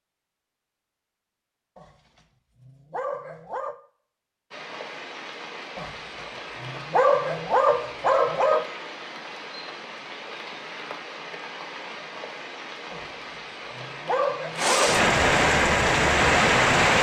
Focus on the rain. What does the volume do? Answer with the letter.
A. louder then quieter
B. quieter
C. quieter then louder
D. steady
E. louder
E.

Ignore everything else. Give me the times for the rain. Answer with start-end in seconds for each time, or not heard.
4.5-16.9.